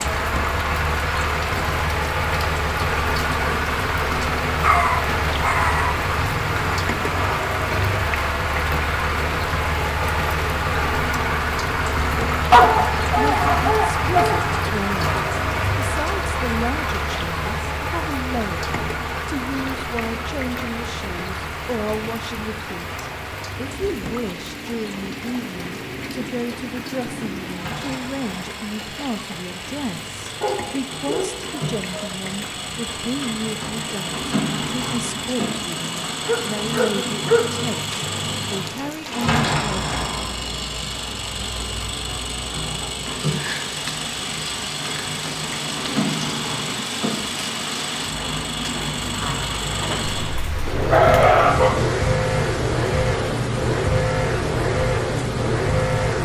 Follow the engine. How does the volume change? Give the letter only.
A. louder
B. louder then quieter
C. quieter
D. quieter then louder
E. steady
D.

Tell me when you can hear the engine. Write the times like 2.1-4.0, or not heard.
0.0-56.1.